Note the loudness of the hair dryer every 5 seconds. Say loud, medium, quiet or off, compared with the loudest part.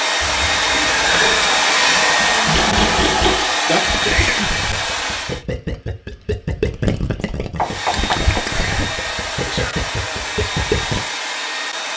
loud, medium, medium.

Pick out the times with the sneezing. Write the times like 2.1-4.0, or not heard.
0.2-1.6, 4.0-4.5, 8.4-9.8.